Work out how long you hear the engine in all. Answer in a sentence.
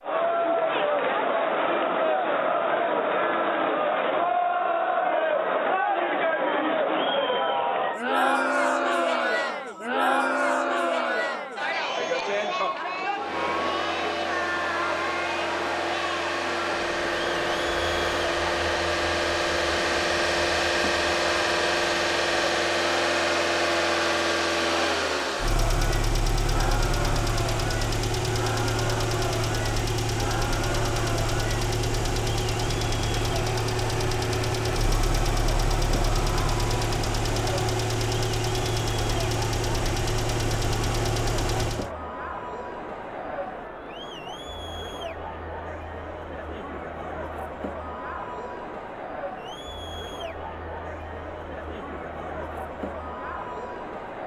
The engine can be heard for 29 seconds in total.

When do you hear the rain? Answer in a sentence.
You can't hear the rain here.